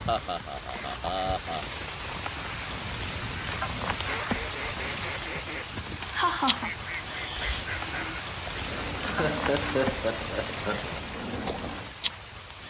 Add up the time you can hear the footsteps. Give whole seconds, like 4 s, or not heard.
not heard.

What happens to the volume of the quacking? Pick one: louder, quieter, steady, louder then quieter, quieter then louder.
steady.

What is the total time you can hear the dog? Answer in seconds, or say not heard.
not heard.